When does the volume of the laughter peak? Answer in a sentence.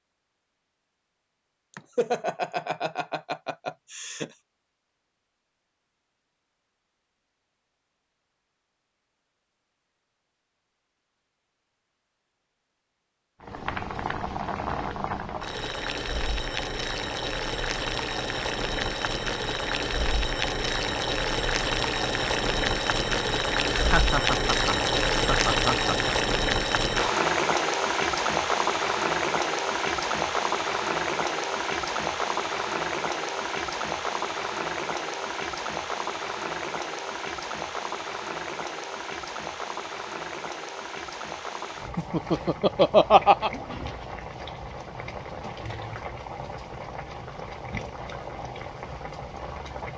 The loudest moment of the laughter is at 43 seconds.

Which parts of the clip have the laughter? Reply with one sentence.
You can hear the laughter from 1.7 to 4.3 s, from 23.7 to 26.1 s and from 42.0 to 43.5 s.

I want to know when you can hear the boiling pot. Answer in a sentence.
You can hear the boiling pot from 13.4 to 49.9 s.